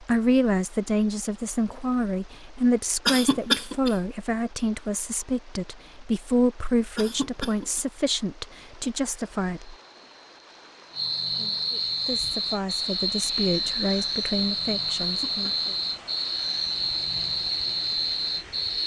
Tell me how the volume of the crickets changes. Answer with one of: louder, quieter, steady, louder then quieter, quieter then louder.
louder.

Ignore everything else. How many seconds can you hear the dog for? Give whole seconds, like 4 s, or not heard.
not heard.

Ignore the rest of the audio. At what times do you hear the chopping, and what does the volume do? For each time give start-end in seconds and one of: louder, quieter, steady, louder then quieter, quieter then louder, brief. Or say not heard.
not heard.